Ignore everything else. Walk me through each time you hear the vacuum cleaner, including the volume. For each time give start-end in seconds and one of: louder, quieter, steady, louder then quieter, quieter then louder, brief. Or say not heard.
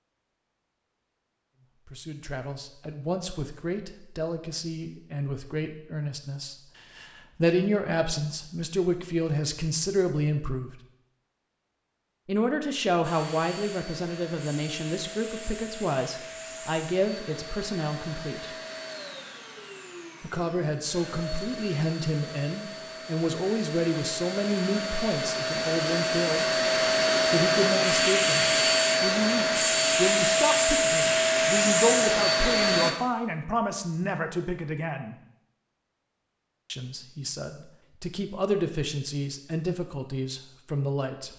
13.0-33.0 louder.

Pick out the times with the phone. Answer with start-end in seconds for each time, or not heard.
not heard.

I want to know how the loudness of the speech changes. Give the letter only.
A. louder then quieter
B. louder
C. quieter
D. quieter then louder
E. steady
E.